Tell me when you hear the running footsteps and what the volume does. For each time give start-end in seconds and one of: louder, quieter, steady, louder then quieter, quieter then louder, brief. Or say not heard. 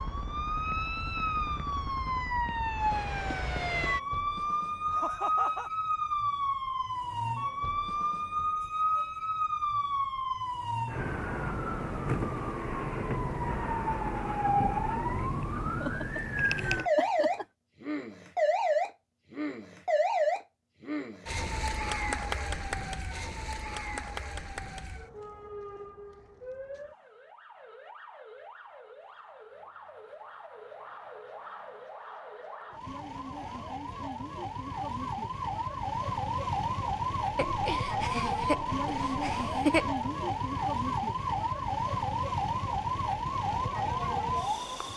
not heard.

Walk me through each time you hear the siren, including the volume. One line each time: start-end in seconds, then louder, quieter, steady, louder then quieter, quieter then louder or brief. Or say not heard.
0.0-44.9 quieter then louder.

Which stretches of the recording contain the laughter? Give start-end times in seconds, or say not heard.
4.9-5.7, 15.8-17.4, 37.4-40.0.